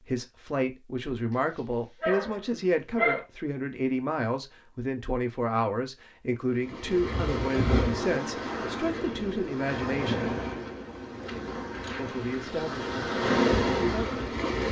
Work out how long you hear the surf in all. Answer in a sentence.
The surf can be heard for 8 seconds in total.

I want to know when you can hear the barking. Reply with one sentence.
The barking can be heard from 2.0 to 3.2 s.